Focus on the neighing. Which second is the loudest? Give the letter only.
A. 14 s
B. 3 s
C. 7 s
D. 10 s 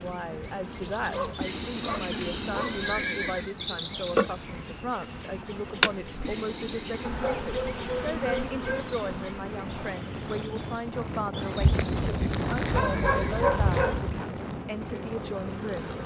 B.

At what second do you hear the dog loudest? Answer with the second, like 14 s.
14 s.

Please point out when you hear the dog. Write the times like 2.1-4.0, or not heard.
1.1-2.8, 7.0-8.9, 11.6-14.2.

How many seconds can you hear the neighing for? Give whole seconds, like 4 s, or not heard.
5 s.